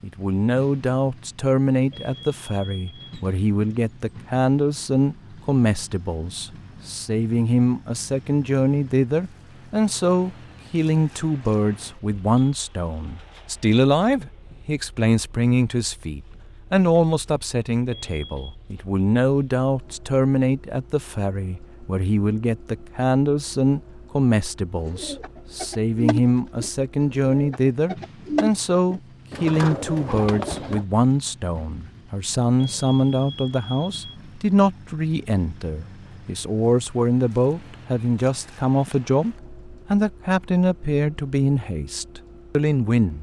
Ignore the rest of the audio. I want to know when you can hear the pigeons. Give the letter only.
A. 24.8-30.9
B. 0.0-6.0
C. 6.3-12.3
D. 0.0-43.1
A.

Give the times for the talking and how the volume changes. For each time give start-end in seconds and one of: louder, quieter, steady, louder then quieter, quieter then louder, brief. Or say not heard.
0.0-43.1 steady.